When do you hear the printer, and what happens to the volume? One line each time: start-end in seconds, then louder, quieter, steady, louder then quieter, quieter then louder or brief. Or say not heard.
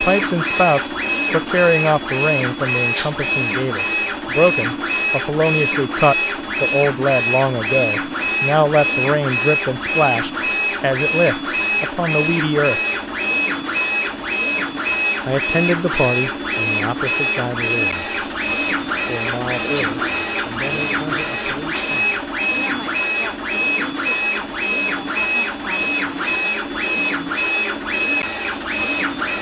0.0-29.3 steady.